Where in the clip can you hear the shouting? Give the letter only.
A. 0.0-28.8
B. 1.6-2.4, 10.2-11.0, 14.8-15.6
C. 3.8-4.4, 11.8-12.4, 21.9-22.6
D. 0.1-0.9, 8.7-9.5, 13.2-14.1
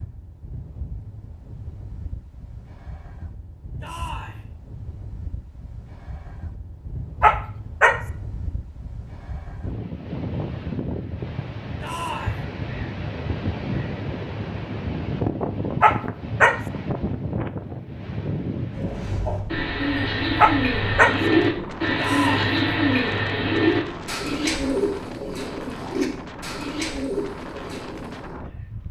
C.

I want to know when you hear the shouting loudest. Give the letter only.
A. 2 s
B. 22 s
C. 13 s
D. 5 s
B.